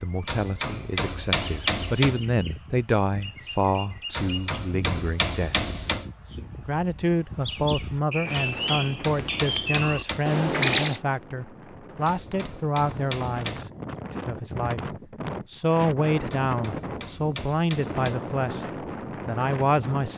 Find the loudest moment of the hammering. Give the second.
2 s.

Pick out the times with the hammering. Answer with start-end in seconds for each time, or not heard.
0.2-2.2, 4.1-6.1, 8.3-10.3, 12.1-13.7, 16.3-18.2.